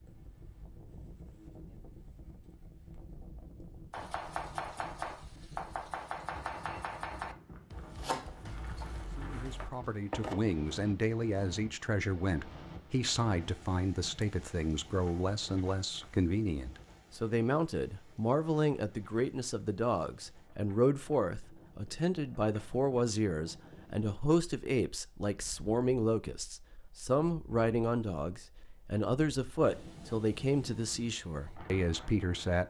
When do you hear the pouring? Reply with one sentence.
You can't hear the pouring here.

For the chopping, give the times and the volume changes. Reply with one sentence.
The chopping can be heard from 3.9 to 10.3 s, getting quieter.